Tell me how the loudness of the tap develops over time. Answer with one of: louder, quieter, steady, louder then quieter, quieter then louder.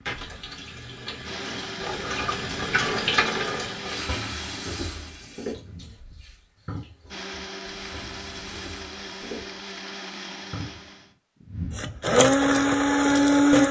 louder then quieter.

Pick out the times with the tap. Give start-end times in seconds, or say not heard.
0.1-10.9.